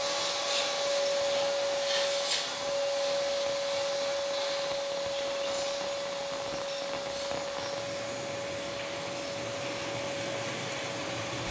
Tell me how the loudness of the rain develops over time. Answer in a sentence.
The loudness of the rain goes up.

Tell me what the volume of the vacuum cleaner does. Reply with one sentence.
The volume of the vacuum cleaner goes down.